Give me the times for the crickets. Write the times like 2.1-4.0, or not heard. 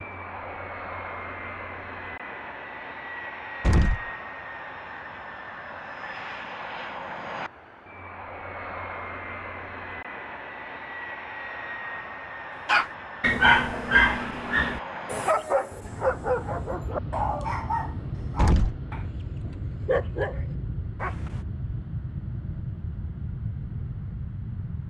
not heard.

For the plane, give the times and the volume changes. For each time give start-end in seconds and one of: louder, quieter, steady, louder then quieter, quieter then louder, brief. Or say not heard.
0.0-24.8 steady.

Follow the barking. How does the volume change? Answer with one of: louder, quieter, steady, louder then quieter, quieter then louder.
quieter then louder.